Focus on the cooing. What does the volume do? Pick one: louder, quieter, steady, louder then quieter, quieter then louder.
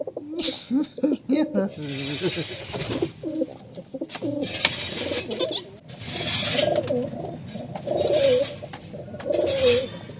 louder.